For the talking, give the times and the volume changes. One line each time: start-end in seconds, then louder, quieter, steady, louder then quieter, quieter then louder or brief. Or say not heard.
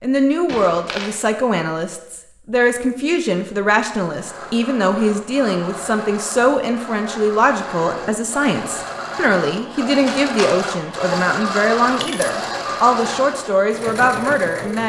0.0-14.8 steady.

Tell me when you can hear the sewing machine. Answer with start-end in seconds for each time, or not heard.
4.0-14.8.